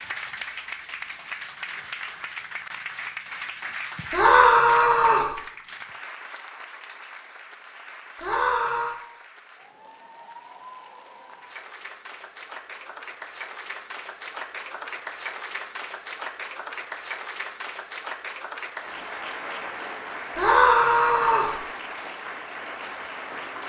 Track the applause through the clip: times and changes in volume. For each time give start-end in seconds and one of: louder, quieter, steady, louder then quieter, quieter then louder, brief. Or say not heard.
0.0-23.6 quieter then louder.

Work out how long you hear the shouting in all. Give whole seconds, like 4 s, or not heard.
3 s.